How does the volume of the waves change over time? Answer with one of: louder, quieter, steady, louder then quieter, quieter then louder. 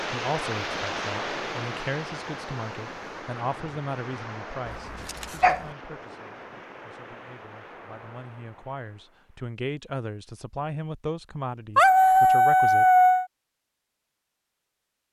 quieter.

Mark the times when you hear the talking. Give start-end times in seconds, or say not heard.
0.1-12.8.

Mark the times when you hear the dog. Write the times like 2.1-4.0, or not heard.
4.7-5.7, 11.8-13.2.